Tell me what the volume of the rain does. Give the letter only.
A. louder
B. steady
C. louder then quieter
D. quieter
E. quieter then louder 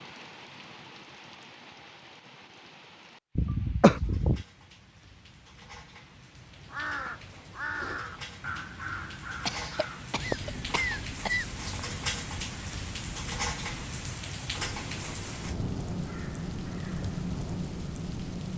A.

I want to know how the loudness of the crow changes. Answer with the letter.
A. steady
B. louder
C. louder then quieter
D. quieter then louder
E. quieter
E.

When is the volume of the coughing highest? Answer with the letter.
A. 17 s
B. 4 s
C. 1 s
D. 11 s
B.